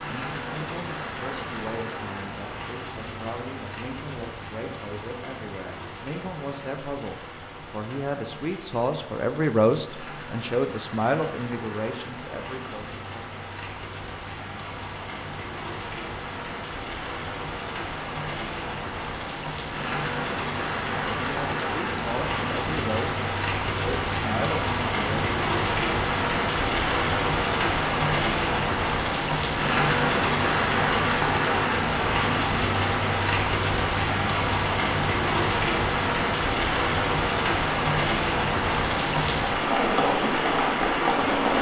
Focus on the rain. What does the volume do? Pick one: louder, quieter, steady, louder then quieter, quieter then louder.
louder.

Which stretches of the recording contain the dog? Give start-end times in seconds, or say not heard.
not heard.